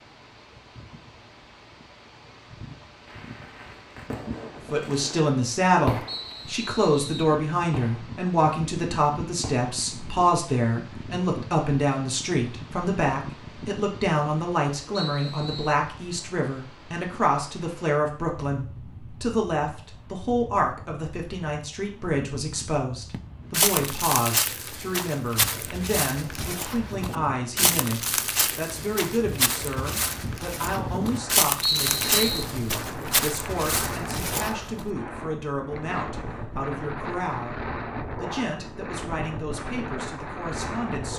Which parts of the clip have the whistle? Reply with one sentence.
You can hear the whistle from 6.0 to 7.3 s, from 14.9 to 15.8 s and from 31.6 to 32.5 s.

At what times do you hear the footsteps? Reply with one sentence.
The footsteps can be heard from 23.1 to 34.9 s.